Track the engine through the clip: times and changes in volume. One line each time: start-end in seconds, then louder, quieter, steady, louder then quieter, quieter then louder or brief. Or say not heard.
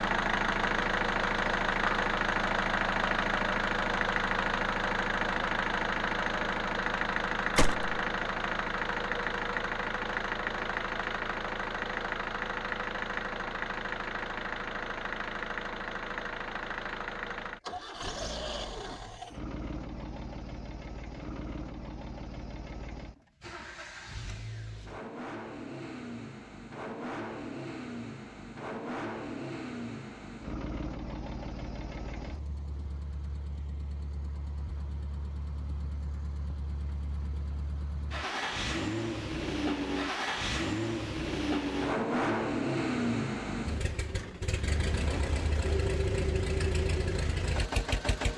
0.0-48.3 quieter then louder.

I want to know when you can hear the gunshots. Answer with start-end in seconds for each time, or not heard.
7.5-8.0.